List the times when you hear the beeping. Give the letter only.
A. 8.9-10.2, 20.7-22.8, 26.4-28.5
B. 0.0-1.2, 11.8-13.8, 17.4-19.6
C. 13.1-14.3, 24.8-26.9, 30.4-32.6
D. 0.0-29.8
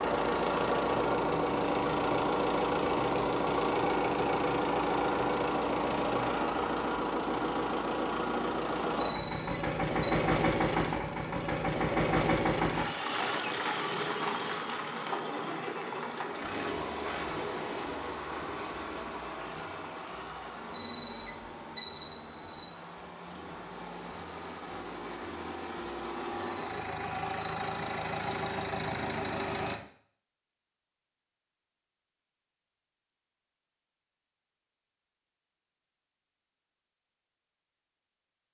A.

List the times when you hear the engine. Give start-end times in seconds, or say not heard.
0.0-29.8.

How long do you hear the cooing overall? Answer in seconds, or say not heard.
not heard.